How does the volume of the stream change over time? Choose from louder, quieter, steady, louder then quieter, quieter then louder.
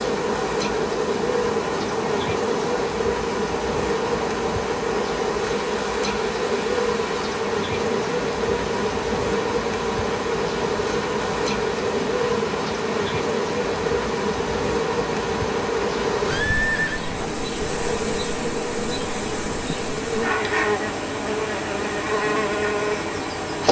steady.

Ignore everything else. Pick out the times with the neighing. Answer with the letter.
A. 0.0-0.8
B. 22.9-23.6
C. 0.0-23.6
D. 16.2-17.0
D.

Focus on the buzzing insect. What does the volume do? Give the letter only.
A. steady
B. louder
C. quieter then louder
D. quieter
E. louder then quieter
A.